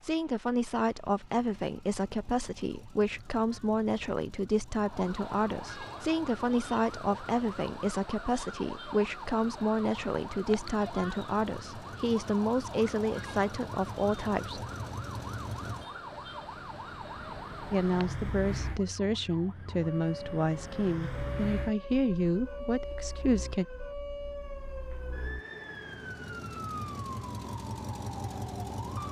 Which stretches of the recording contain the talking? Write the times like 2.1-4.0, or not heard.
0.0-14.6, 17.7-23.6.